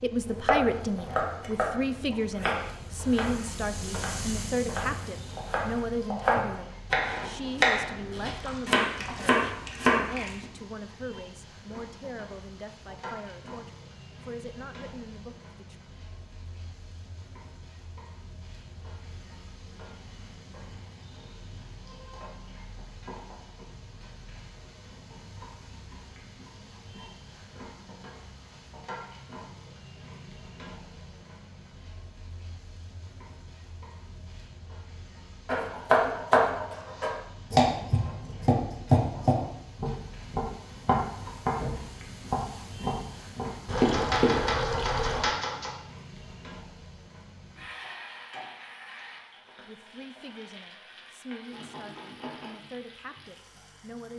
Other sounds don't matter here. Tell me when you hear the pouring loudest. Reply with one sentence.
The loudest moment of the pouring is at 44 seconds.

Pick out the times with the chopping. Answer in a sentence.
The chopping can be heard from 0.2 to 10.4 s and from 35.5 to 45.7 s.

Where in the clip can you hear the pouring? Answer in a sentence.
You can hear the pouring from 8.3 to 10.5 s and from 43.6 to 45.2 s.